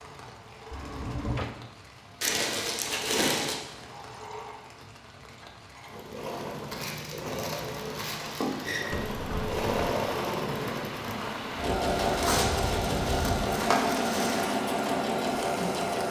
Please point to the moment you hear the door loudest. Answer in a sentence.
The loudest moment of the door is at 1 second.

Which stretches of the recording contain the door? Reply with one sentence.
The door can be heard from 0.7 to 1.5 s and from 8.9 to 9.8 s.